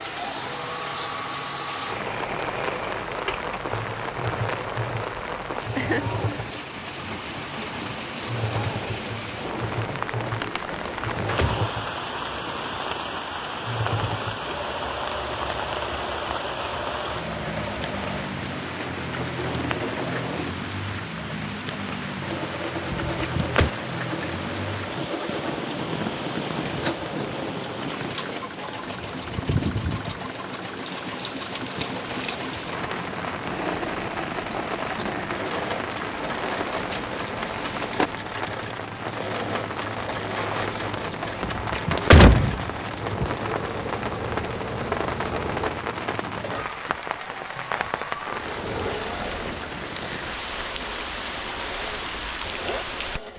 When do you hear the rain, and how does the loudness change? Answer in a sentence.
You can hear the rain from 0.0 to 53.3 s, at a steady volume.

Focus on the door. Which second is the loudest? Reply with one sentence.
The volume of the door peaks at 42 seconds.